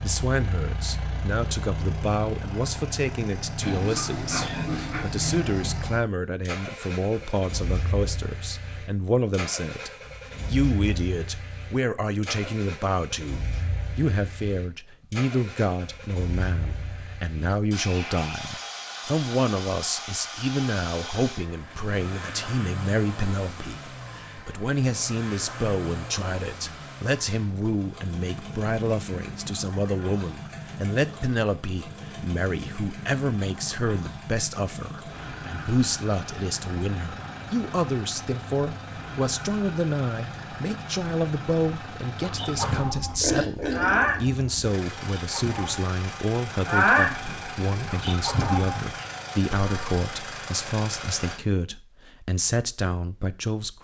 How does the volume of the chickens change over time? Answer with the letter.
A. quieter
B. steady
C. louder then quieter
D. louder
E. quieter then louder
C.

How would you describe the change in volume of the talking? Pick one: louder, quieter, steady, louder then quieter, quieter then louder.
steady.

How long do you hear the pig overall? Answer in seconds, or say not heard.
4 s.